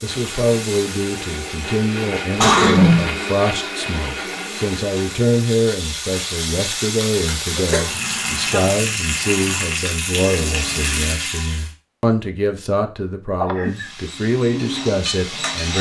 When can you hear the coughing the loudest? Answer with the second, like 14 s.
3 s.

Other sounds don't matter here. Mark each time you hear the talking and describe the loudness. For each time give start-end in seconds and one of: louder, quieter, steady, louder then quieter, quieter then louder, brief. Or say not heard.
0.0-15.7 steady.